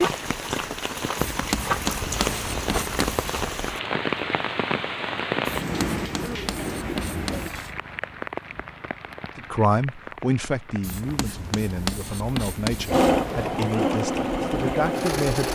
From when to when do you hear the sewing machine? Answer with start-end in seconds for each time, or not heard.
12.8-15.4.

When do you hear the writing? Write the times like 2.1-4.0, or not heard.
1.1-3.5, 5.5-7.8, 10.8-13.7.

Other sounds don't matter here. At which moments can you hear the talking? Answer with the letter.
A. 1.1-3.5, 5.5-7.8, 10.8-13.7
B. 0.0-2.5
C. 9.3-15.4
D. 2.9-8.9
C.